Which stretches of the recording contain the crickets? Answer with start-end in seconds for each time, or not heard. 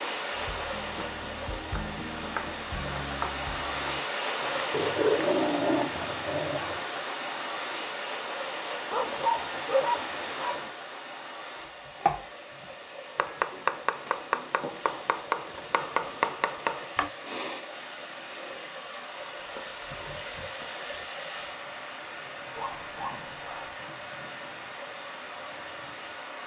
not heard.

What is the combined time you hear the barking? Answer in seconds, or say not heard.
5 s.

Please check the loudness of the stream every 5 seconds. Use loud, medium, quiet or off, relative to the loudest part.
loud, loud, medium, medium, medium, medium.